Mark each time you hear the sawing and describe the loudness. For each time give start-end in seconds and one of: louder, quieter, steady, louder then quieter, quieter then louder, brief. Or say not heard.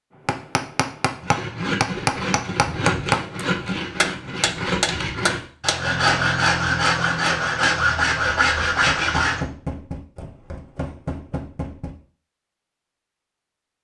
1.2-9.4 louder.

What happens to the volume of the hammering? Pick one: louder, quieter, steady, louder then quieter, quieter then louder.
quieter.